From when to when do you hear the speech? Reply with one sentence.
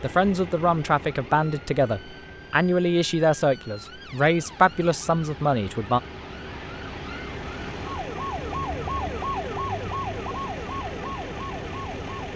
The speech can be heard from 0.0 to 6.0 s.